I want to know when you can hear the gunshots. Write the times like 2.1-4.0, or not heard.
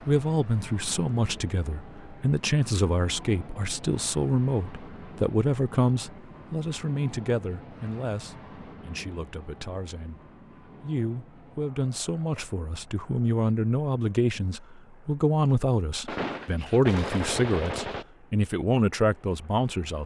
16.1-18.1.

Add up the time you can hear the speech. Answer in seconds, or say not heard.
20 s.